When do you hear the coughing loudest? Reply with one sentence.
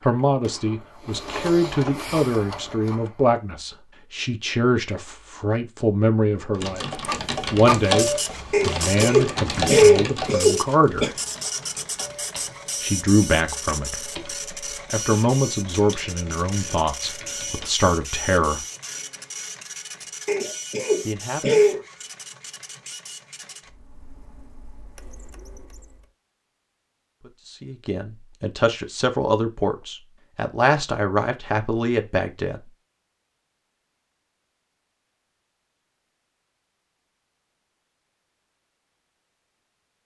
The volume of the coughing peaks at 10 seconds.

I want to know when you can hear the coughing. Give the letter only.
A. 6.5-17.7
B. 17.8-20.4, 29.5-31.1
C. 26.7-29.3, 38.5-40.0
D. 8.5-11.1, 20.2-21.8
D.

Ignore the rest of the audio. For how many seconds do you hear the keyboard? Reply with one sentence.
You can hear the keyboard for 11 seconds altogether.